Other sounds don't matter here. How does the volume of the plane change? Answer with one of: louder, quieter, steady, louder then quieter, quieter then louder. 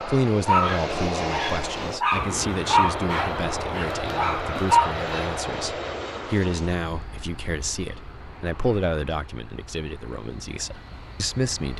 quieter.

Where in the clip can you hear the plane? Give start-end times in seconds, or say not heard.
0.0-11.7.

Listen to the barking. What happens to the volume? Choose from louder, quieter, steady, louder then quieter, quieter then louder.
louder then quieter.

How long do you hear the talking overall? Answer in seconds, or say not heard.
12 s.